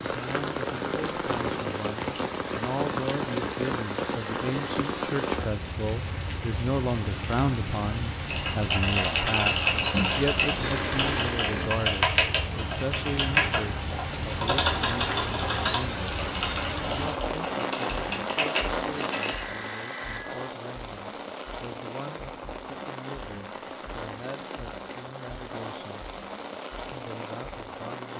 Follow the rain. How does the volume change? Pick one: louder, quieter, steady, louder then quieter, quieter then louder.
quieter.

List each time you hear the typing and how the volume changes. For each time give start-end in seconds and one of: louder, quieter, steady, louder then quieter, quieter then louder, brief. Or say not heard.
8.3-19.4 quieter.